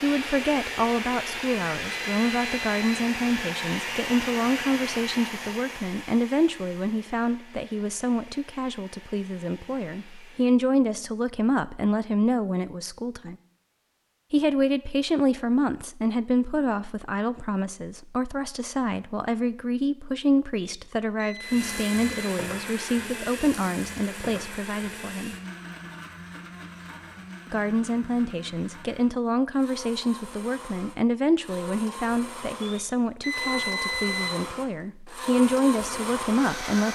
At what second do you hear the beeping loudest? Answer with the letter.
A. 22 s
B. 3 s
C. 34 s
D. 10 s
C.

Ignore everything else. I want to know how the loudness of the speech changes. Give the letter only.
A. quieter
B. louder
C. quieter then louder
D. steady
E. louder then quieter
D.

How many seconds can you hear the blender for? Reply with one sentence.
The blender can be heard for 26 seconds in total.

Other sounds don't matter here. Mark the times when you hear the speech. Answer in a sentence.
You can hear the speech from 0.0 to 13.3 s, from 14.3 to 25.4 s and from 27.5 to 36.9 s.